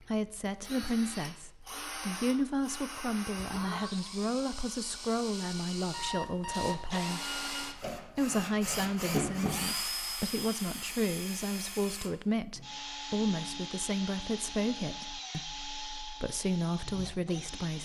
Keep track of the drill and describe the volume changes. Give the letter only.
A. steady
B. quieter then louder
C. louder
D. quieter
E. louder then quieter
E.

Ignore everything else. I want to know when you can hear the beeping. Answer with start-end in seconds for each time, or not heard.
5.9-7.2.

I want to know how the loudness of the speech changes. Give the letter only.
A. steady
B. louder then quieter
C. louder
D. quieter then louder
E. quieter
A.